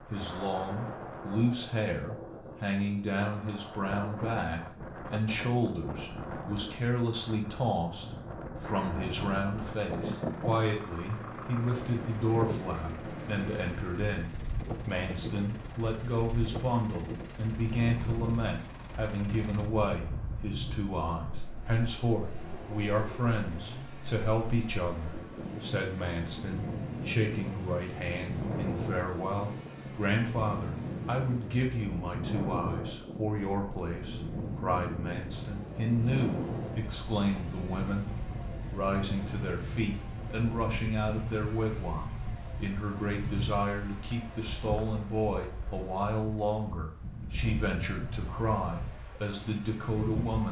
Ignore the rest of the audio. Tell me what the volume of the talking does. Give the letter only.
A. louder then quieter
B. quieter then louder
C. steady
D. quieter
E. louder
C.